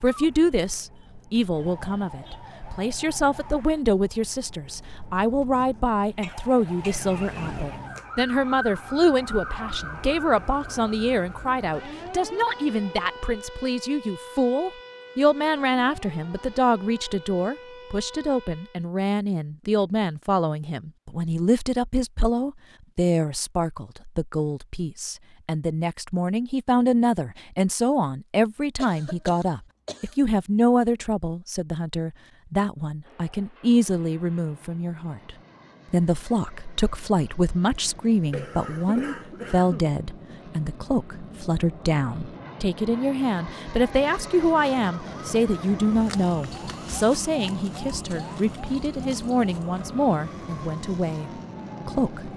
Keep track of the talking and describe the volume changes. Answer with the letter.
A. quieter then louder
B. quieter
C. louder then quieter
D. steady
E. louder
D.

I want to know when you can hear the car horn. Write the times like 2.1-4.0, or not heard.
not heard.